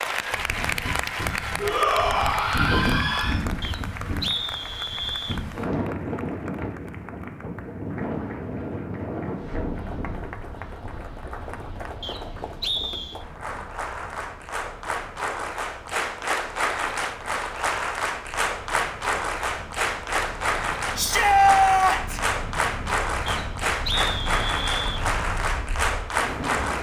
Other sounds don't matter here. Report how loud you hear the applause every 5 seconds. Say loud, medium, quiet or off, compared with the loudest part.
medium, quiet, medium, loud, loud, loud.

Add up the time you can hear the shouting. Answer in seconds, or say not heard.
3 s.